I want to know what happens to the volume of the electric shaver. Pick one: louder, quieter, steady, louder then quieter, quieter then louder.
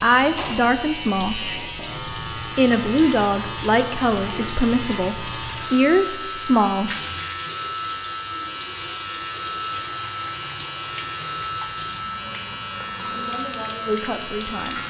steady.